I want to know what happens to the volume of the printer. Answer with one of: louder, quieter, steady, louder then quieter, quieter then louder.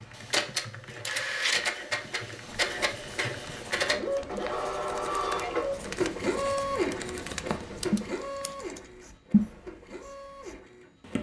quieter.